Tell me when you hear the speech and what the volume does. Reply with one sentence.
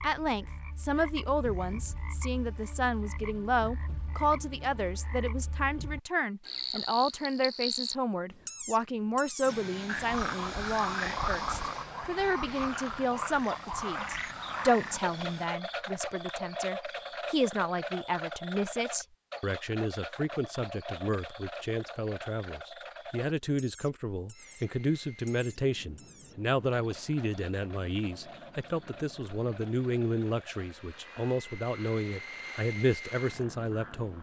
The speech can be heard from 0.0 to 34.1 s, at a steady volume.